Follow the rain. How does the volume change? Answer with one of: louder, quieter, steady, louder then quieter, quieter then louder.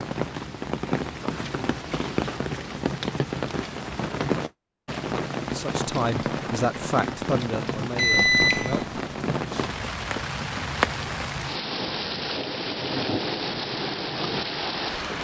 steady.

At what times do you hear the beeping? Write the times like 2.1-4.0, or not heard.
8.0-8.9.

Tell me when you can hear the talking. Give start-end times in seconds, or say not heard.
5.5-8.8.